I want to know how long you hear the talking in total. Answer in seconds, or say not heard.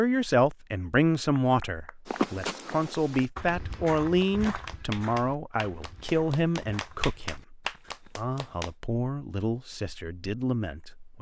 11 s.